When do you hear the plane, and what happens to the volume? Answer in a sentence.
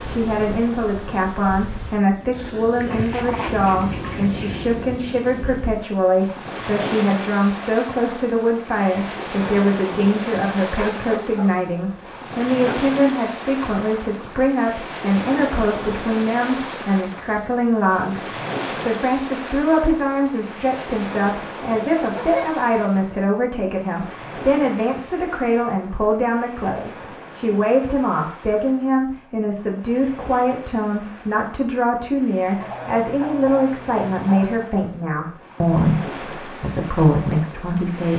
The plane can't be heard in this clip.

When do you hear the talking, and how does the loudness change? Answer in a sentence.
You can hear the talking from 0.1 to 38.1 s, at a steady volume.